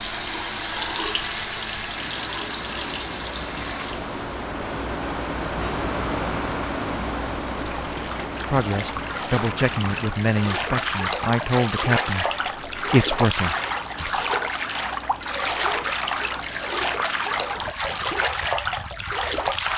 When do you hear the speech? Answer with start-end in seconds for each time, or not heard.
8.5-14.1.